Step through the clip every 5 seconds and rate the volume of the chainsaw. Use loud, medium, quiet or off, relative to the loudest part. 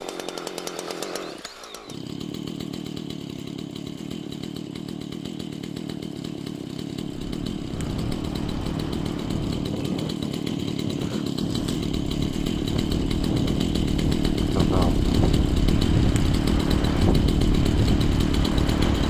medium, medium, loud, loud.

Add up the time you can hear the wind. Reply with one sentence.
You can hear the wind for 12 seconds altogether.